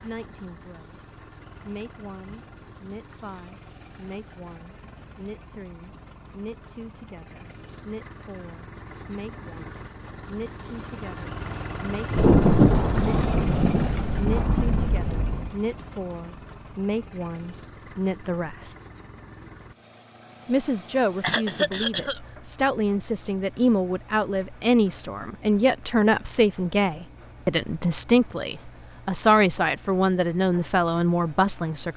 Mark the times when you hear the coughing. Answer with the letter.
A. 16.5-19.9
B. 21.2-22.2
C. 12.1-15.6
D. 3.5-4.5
B.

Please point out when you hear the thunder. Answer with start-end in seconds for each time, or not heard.
12.1-15.6.